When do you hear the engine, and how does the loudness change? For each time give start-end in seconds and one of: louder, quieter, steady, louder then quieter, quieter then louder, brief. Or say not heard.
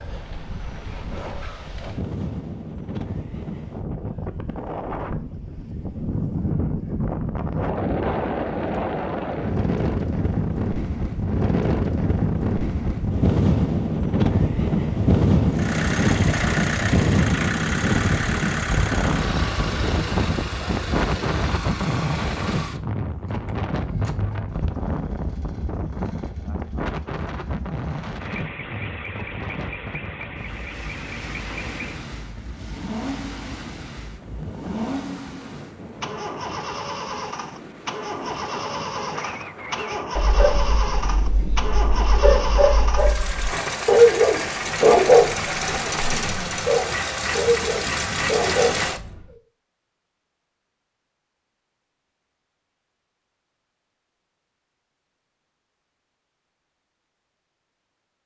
15.5-49.2 quieter then louder.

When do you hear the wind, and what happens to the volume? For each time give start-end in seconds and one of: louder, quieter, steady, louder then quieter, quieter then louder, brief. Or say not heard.
0.0-43.1 louder then quieter.